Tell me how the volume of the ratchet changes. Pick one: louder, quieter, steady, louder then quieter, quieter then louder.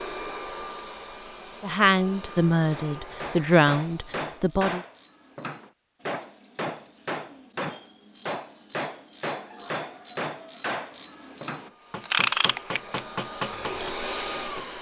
louder.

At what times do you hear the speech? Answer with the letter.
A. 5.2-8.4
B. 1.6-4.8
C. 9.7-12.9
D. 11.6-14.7
B.